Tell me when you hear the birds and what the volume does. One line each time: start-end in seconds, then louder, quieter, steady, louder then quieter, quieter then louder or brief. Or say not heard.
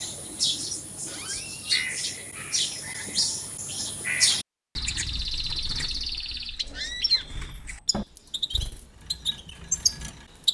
0.0-10.4 steady.